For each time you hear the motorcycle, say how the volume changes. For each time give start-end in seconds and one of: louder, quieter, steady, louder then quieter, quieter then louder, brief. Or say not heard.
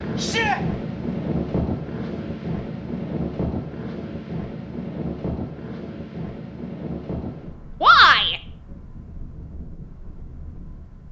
not heard.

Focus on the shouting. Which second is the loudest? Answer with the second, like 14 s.
8 s.